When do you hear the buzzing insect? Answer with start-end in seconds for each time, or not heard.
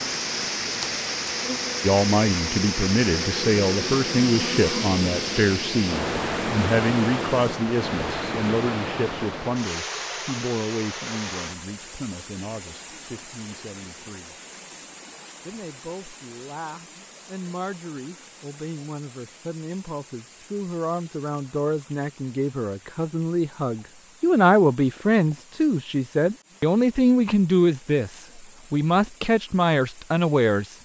0.0-7.6.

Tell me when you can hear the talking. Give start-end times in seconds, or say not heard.
1.8-14.3, 15.4-30.7.